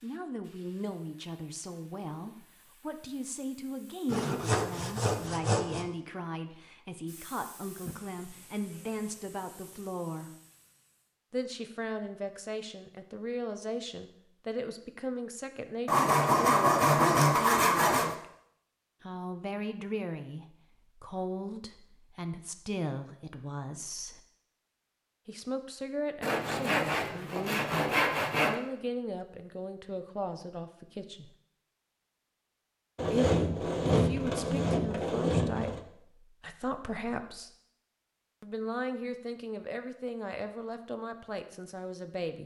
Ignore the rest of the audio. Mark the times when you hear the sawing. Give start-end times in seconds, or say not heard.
4.0-5.8, 15.8-18.1, 26.2-28.6, 33.0-35.8.